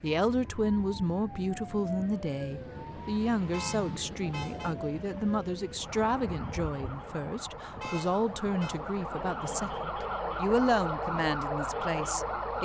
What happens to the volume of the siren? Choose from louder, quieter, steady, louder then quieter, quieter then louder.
louder.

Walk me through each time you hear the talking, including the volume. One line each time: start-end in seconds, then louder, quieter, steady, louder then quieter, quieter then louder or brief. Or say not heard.
0.0-12.6 steady.